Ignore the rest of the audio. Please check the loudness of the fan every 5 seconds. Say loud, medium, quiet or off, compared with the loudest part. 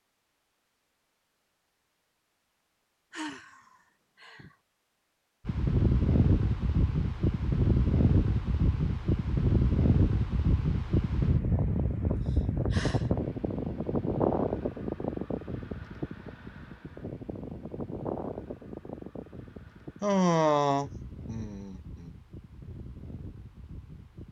off, loud, loud, medium, quiet.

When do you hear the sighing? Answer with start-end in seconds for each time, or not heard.
3.1-4.5, 12.1-13.1, 20.0-22.1.